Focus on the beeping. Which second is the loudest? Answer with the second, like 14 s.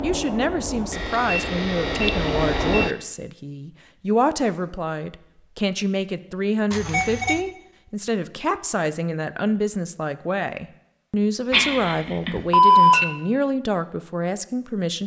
13 s.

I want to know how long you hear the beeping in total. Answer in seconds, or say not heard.
4 s.